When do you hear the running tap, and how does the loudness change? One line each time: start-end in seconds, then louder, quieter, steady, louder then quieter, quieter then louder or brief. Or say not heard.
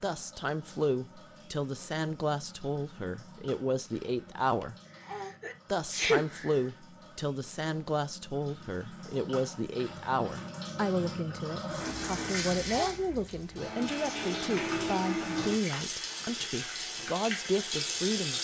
0.0-18.3 louder.